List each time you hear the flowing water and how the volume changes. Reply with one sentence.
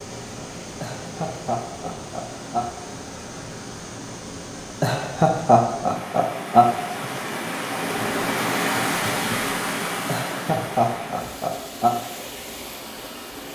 You can hear the flowing water from 0.0 to 13.5 s, getting louder then quieter.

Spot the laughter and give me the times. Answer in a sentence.
The laughter can be heard from 0.8 to 2.8 s, from 4.8 to 7.1 s and from 10.1 to 11.9 s.